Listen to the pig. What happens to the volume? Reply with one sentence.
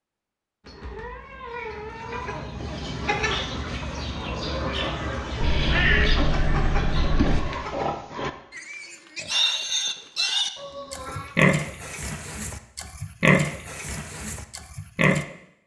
The loudness of the pig goes up, then down.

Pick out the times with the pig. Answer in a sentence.
The pig can be heard from 7.2 to 15.2 s.